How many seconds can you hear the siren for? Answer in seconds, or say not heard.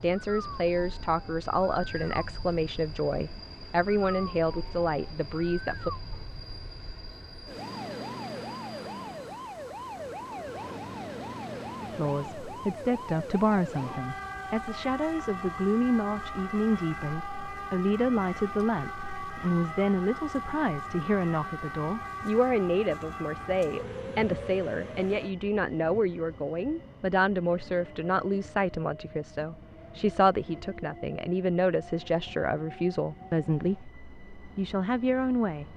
25 s.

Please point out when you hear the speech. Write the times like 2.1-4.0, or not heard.
0.0-5.9, 11.8-35.7.